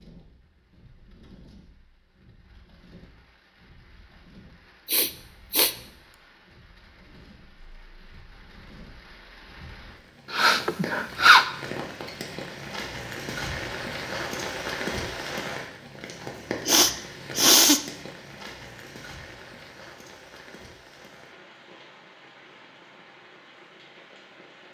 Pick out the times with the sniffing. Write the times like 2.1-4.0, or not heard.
4.8-5.8, 10.3-11.4, 16.6-17.8.